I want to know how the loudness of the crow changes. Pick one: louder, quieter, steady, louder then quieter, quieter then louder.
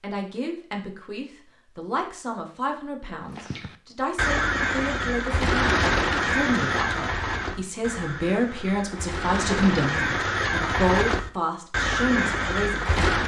quieter then louder.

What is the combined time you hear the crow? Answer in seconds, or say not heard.
10 s.